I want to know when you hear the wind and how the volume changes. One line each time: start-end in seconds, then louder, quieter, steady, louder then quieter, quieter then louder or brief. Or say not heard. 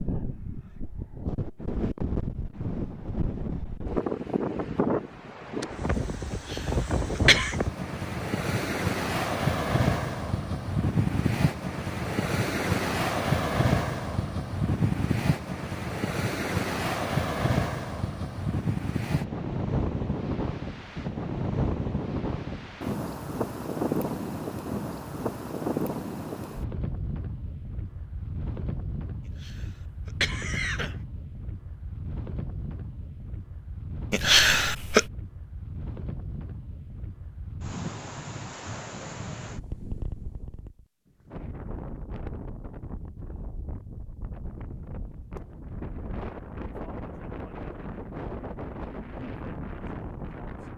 0.0-50.7 quieter.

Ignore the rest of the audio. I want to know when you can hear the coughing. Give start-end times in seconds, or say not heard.
6.5-7.5, 29.4-30.9, 34.1-35.0.